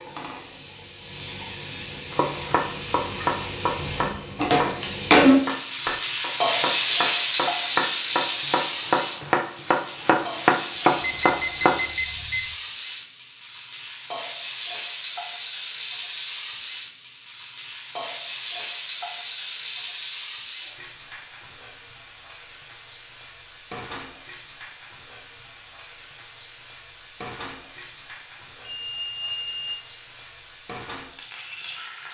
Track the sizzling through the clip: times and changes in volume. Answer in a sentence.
The sizzling can be heard from 0.0 to 32.0 s, getting quieter.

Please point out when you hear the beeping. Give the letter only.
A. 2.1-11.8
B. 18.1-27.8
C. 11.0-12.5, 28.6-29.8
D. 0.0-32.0
C.